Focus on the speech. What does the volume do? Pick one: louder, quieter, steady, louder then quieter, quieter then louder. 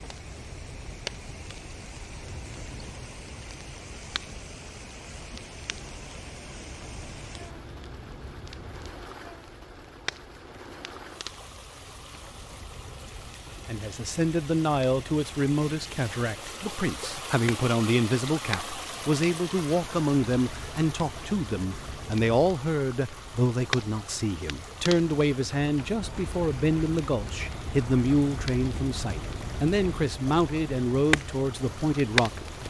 steady.